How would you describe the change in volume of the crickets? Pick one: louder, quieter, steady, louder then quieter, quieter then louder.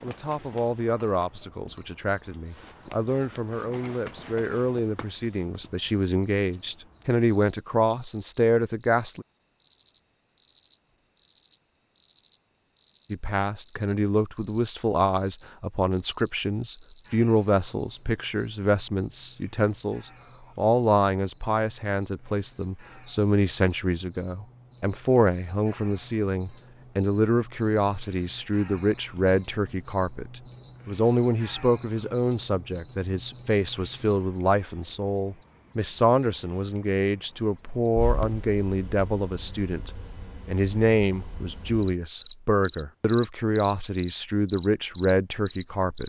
louder.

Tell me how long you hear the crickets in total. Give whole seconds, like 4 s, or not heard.
46 s.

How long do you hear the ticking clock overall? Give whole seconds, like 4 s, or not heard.
not heard.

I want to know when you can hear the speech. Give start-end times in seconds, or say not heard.
0.0-9.2, 13.1-46.0.